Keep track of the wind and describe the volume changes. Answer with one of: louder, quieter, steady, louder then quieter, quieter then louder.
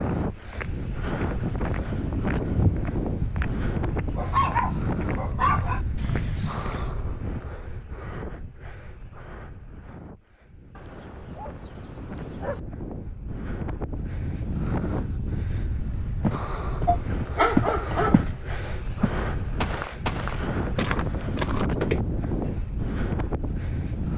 quieter then louder.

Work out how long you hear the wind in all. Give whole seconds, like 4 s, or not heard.
24 s.